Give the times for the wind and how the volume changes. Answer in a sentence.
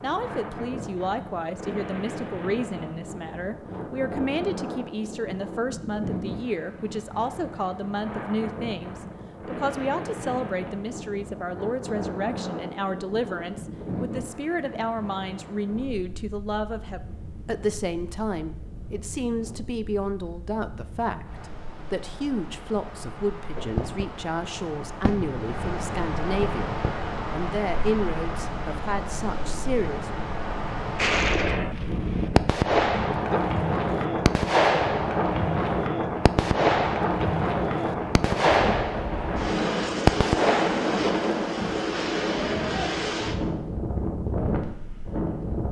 You can hear the wind from 0.0 to 45.6 s, getting louder.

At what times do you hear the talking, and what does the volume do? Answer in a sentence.
You can hear the talking from 0.0 to 30.1 s, at a steady volume.